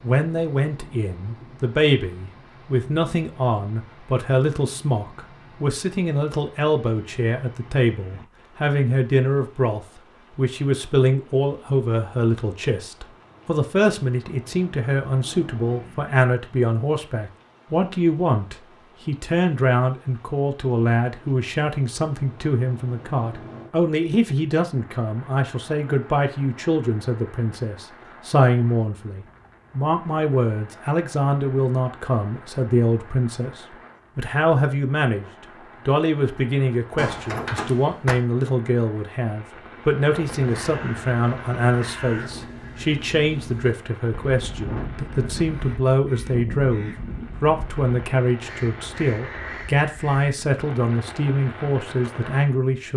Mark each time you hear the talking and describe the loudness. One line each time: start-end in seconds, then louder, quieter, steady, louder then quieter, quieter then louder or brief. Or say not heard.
0.0-35.2 steady
35.9-52.9 steady.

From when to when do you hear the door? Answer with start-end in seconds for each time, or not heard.
37.0-38.1.